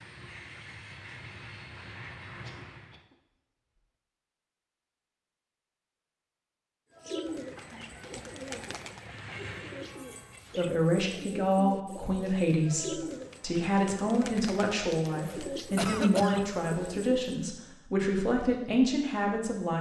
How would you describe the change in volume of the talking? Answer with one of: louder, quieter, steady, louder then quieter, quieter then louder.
steady.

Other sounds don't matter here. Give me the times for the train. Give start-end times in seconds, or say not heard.
0.0-3.0, 7.2-10.6.